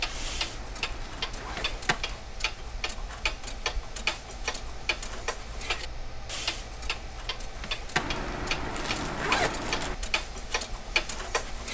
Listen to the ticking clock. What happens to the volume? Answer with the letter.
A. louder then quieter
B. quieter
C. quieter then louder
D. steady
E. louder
D.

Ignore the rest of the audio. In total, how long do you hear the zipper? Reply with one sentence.
You can hear the zipper for 4 seconds altogether.